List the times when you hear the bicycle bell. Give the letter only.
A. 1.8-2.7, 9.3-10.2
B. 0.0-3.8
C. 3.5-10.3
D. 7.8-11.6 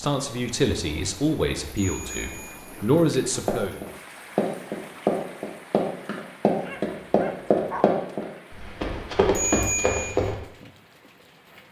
A.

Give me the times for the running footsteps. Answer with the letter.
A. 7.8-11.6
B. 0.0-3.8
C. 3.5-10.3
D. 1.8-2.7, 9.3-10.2
C.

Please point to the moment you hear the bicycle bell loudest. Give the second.
10 s.